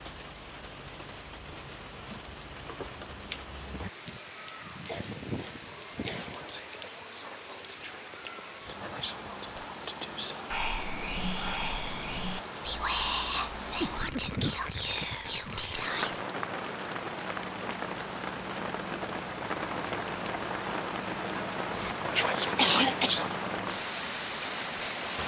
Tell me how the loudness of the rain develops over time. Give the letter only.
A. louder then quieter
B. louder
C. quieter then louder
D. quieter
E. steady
B.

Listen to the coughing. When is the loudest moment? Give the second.
23 s.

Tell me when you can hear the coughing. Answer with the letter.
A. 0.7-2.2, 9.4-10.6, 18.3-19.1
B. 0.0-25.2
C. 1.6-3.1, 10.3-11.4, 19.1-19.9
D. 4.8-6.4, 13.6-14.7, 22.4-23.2
D.